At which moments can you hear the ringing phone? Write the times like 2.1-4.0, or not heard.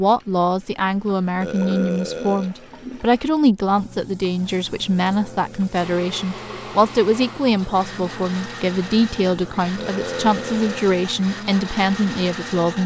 not heard.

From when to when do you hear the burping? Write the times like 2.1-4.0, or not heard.
1.4-2.5, 4.8-5.8, 9.8-10.9.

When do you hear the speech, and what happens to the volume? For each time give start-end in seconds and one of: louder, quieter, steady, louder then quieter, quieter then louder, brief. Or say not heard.
0.0-12.8 steady.